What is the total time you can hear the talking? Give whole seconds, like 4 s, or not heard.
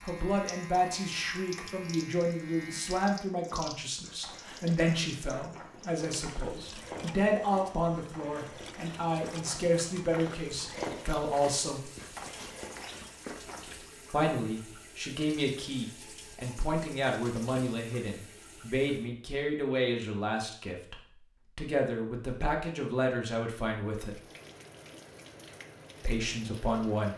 23 s.